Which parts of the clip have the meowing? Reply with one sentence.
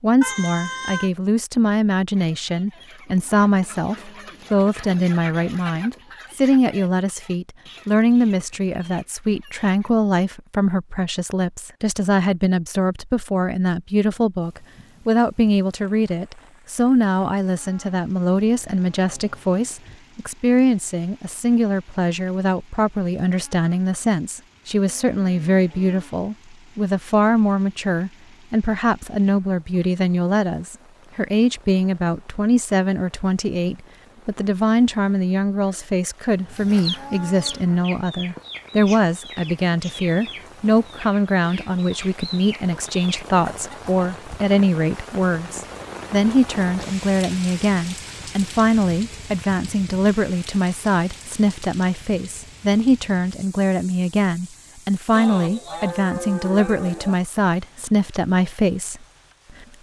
You can hear the meowing from 0.2 to 1.1 s.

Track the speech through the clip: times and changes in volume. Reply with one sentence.
You can hear the speech from 0.0 to 59.0 s, at a steady volume.